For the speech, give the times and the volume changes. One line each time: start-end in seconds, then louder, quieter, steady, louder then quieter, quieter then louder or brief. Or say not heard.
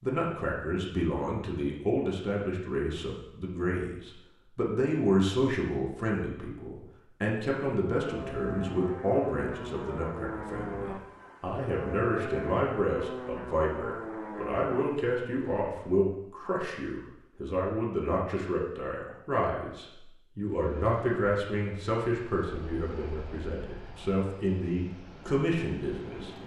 0.0-26.3 steady.